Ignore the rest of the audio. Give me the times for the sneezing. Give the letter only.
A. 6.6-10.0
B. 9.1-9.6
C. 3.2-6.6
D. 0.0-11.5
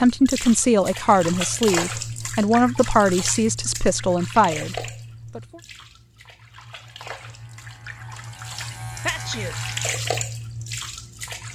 B.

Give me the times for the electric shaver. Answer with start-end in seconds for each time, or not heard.
6.6-10.0.